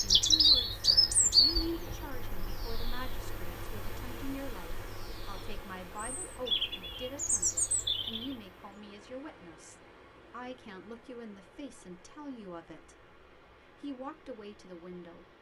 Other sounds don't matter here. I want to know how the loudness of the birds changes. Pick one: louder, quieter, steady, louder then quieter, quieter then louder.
quieter then louder.